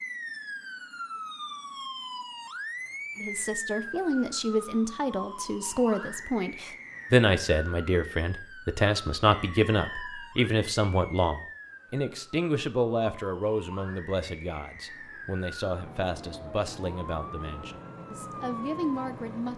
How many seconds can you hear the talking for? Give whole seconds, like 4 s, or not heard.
16 s.